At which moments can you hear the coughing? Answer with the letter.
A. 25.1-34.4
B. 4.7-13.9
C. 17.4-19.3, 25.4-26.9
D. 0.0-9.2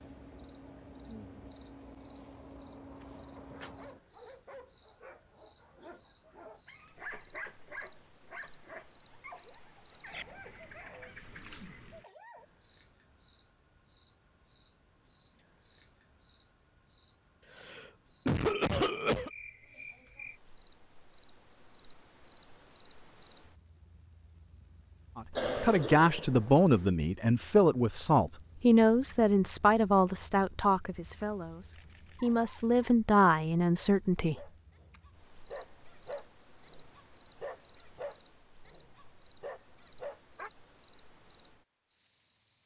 C.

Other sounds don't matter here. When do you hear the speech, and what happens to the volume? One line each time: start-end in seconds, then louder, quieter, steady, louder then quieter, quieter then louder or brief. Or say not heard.
25.1-34.4 quieter then louder.